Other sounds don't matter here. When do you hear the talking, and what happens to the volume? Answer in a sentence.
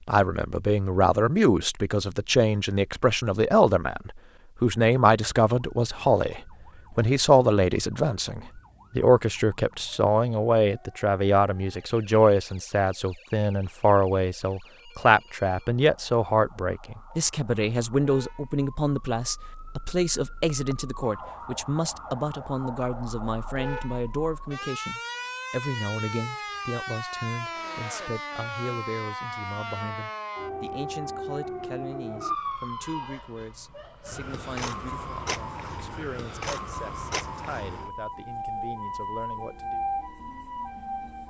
You can hear the talking from 0.1 to 39.9 s, getting quieter.